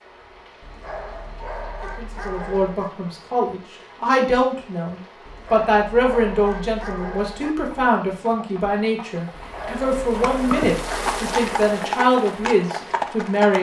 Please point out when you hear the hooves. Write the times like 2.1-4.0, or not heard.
7.7-13.5.